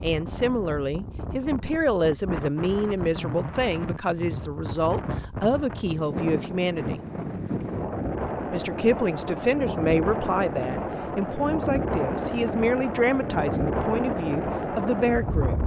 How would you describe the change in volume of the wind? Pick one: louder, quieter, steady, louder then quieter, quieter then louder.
louder.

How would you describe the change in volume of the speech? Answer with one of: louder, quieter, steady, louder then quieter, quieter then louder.
steady.